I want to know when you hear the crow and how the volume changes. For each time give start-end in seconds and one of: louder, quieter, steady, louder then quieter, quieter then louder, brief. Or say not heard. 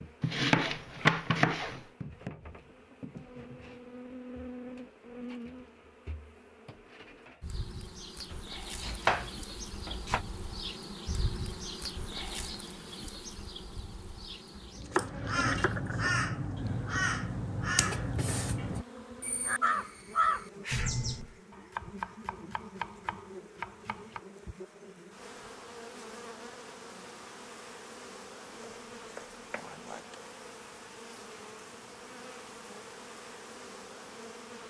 14.9-21.4 steady.